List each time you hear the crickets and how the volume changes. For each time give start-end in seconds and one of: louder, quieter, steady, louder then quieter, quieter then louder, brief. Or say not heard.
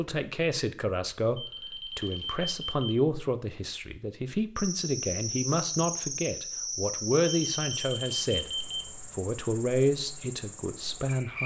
4.5-11.4 quieter.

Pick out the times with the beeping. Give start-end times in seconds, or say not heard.
1.4-3.0, 7.5-9.2.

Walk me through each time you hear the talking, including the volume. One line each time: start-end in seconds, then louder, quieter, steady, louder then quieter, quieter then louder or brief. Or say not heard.
0.0-11.4 steady.